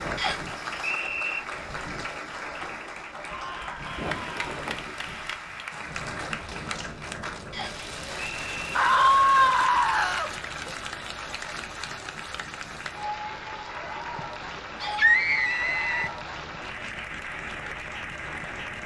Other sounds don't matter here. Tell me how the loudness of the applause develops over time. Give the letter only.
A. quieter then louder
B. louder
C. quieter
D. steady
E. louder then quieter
D.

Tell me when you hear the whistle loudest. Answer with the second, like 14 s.
1 s.